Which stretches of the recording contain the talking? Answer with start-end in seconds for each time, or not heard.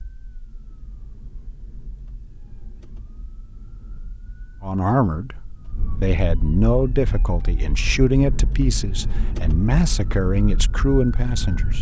4.6-11.7.